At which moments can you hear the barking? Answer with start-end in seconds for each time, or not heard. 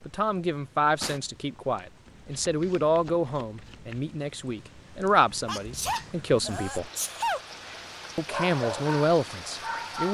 7.6-10.0.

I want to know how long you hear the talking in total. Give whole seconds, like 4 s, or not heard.
9 s.